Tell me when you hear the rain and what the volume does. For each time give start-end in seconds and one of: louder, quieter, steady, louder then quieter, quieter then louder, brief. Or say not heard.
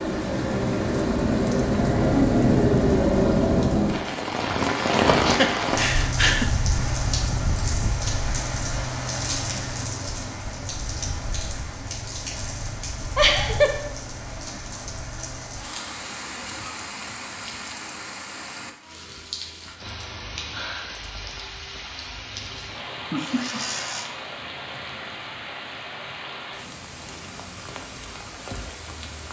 0.0-29.2 quieter.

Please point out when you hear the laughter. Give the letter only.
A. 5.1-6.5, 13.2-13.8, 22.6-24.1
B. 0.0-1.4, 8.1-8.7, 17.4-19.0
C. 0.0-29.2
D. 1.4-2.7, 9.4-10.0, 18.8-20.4
A.